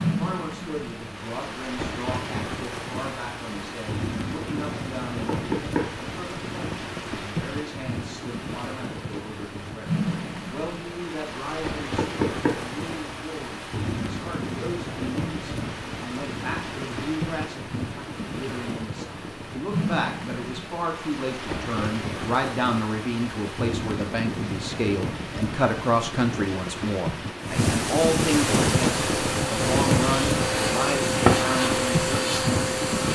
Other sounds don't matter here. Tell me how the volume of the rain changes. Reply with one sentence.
The volume of the rain goes up.